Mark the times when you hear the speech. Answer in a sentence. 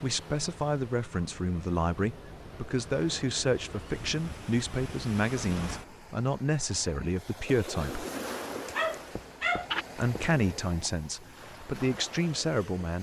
You can hear the speech from 0.0 to 8.1 s and from 9.9 to 12.9 s.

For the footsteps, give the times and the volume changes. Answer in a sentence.
The footsteps can't be heard in this clip.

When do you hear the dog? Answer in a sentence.
You can hear the dog from 8.7 to 10.4 s.